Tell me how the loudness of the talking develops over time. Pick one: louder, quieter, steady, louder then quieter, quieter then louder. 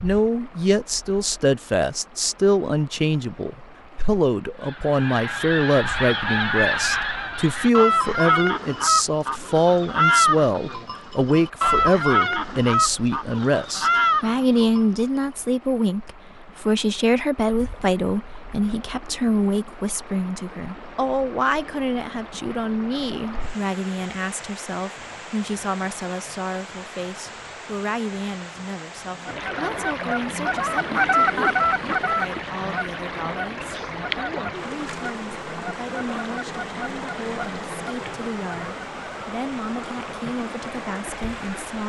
quieter.